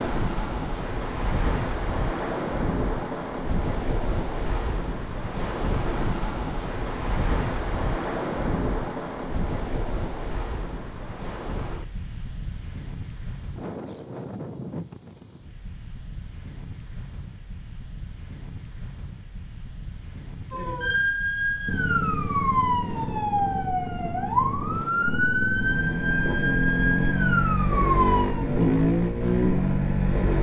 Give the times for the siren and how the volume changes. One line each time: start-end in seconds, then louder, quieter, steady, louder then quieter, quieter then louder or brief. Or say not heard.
20.5-28.4 steady.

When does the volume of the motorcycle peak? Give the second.
29 s.